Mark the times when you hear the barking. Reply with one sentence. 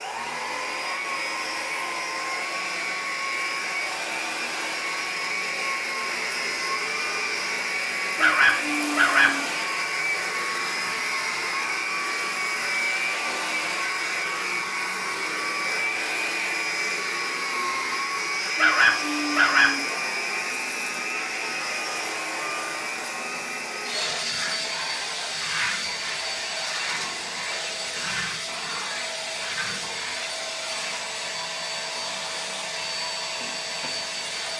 The barking can be heard from 8.2 to 9.4 s and from 18.6 to 19.8 s.